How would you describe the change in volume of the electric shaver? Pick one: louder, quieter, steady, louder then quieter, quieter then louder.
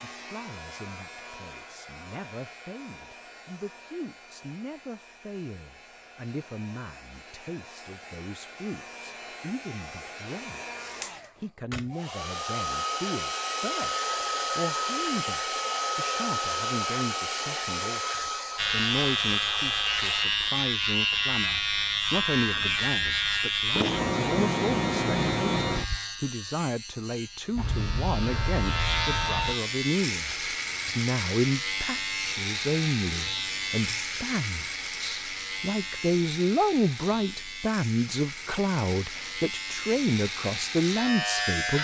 quieter.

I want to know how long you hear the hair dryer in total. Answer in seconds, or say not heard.
20 s.